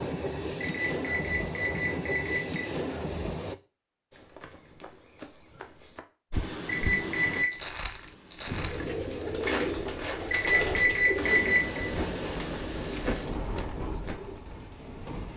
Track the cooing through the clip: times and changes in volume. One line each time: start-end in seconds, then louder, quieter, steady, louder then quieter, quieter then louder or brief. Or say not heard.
8.4-15.3 quieter.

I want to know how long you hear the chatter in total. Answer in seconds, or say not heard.
not heard.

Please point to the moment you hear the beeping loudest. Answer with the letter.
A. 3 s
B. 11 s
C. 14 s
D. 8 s
B.